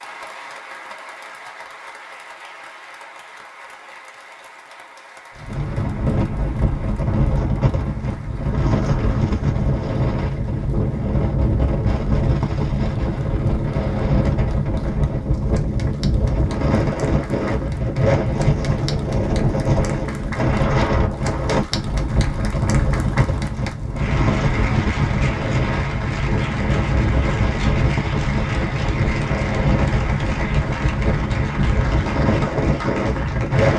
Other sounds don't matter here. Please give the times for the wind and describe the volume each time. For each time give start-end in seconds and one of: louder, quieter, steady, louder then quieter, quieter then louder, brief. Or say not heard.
5.3-33.7 steady.